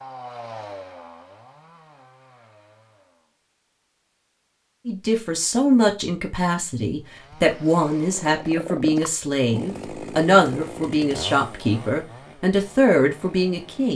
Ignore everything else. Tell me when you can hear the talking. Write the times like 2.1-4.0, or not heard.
4.8-13.9.